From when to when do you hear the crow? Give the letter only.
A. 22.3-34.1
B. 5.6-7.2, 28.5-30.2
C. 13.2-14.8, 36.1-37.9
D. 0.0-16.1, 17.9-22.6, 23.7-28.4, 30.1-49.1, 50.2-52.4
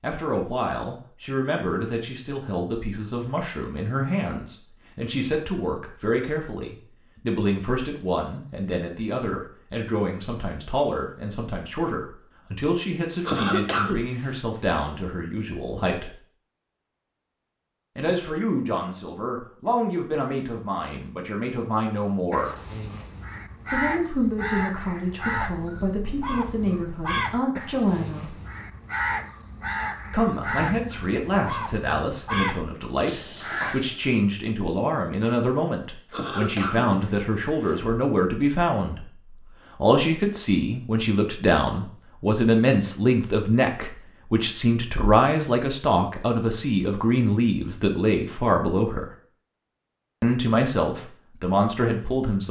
A.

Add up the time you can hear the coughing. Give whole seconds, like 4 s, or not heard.
3 s.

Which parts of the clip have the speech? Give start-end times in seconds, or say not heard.
0.0-16.1, 17.9-22.6, 23.7-28.4, 30.1-49.1, 50.2-52.4.